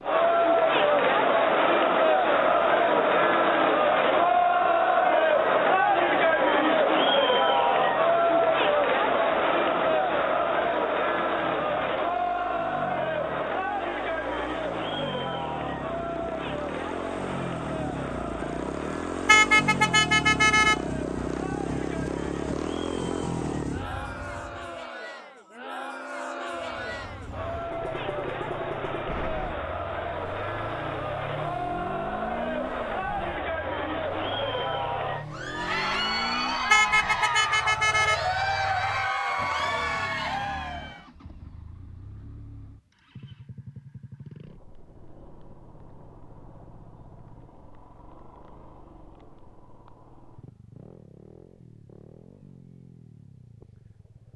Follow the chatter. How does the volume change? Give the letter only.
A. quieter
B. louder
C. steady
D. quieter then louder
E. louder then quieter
D.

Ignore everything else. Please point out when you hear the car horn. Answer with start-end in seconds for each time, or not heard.
19.2-20.8, 36.7-38.2.